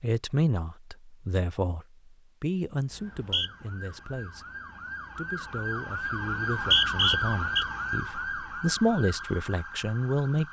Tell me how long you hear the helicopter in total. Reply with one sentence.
The helicopter can't be heard in this clip.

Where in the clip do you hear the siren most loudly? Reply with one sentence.
The loudest moment of the siren is at 7 seconds.